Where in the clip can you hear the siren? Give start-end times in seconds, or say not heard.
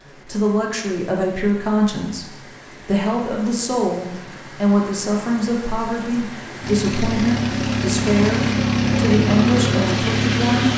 not heard.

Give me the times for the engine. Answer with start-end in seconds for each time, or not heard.
6.6-10.7.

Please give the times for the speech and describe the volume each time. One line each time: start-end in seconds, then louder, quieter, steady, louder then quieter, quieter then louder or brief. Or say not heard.
0.2-10.7 steady.